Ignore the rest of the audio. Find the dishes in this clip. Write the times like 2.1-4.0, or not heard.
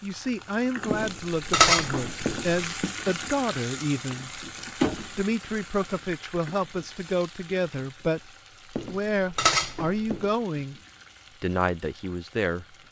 0.9-2.9, 8.8-10.3.